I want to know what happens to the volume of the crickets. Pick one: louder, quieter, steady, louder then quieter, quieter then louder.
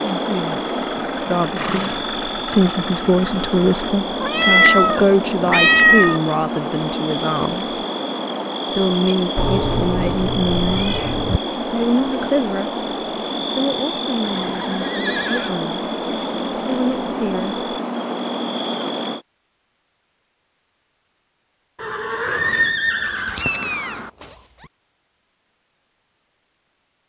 steady.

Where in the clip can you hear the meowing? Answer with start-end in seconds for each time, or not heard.
4.2-6.2, 9.3-11.4, 23.2-24.2.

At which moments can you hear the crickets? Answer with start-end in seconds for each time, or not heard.
0.0-19.2.